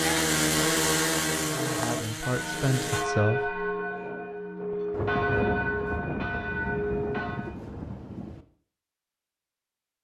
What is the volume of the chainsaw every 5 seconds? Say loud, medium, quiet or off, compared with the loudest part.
loud, off.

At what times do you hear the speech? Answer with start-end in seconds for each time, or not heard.
1.4-3.6.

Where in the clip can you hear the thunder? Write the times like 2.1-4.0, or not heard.
4.9-8.4.